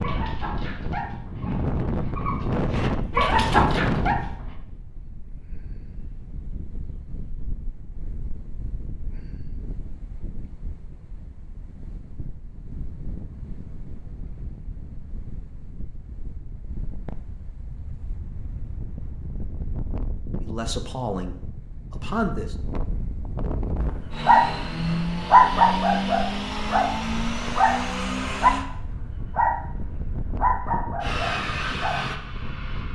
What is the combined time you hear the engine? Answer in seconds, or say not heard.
6 s.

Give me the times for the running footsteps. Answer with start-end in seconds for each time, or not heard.
not heard.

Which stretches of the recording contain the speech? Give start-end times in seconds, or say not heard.
20.4-22.6.